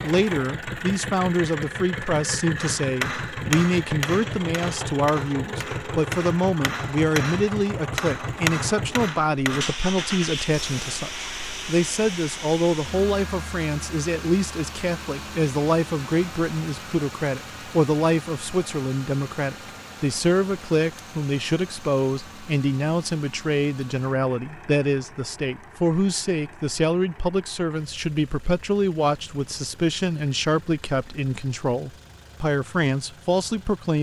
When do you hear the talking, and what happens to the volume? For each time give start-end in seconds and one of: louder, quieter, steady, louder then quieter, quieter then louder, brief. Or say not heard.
0.0-33.9 steady.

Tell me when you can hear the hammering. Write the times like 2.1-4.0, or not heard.
2.5-9.8.